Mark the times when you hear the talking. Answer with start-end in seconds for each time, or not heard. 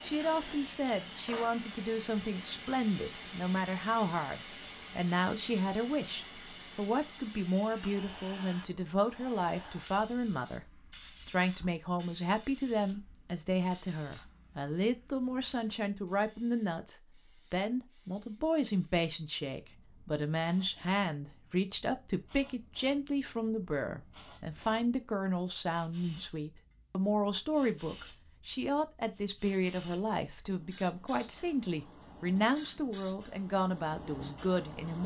0.0-10.7, 11.2-35.0.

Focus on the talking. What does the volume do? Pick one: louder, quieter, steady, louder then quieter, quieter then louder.
steady.